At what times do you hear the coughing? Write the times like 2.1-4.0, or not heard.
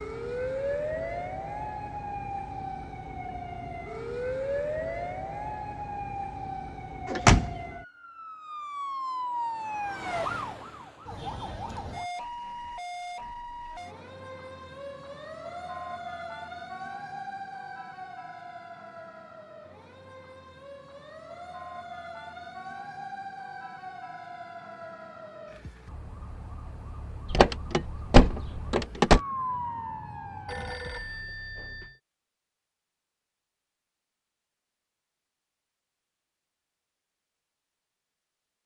not heard.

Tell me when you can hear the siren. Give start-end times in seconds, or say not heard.
0.0-30.8.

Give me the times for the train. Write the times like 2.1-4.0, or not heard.
not heard.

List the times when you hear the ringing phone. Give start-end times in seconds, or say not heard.
30.4-32.0.